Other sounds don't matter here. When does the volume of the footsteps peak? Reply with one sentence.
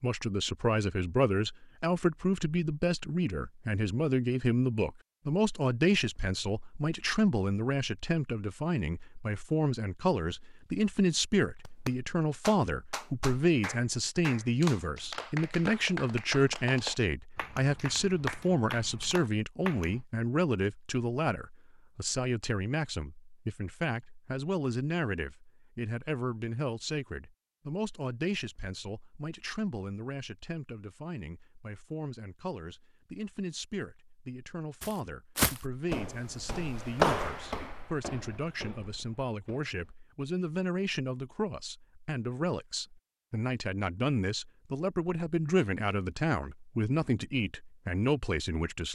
The loudest moment of the footsteps is at 37 seconds.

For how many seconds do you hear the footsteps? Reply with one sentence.
The footsteps can be heard for 5 seconds in total.